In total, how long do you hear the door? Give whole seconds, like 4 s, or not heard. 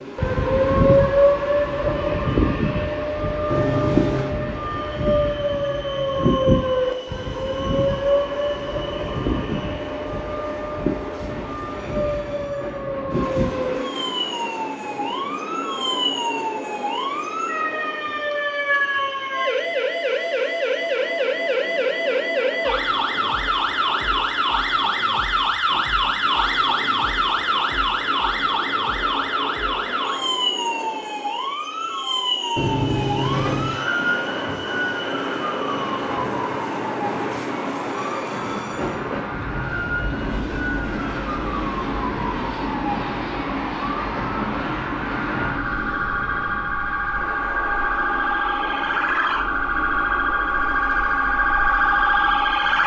2 s.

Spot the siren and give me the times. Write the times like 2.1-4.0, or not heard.
0.0-52.8.